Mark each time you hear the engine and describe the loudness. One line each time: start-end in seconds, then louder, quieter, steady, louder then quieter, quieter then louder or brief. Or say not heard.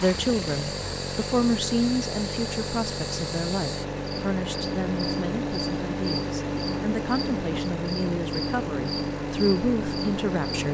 0.0-10.6 steady.